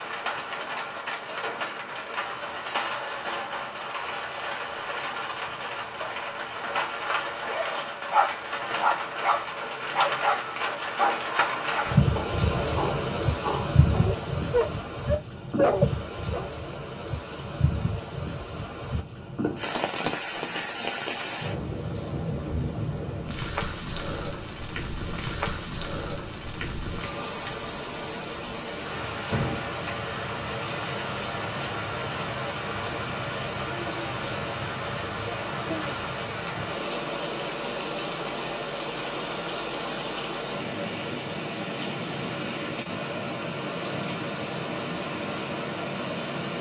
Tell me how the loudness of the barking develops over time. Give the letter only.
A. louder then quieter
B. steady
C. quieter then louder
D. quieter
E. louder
C.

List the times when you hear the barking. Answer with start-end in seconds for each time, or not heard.
7.5-16.4.